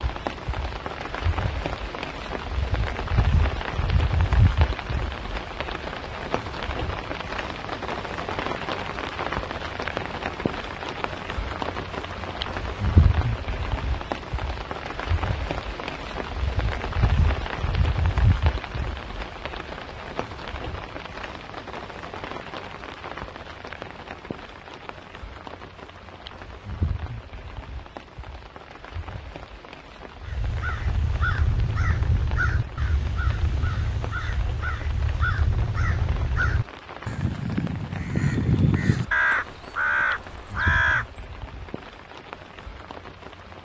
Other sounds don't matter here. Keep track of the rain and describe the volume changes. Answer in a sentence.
The volume of the rain goes down.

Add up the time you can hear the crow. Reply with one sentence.
You can hear the crow for 11 seconds altogether.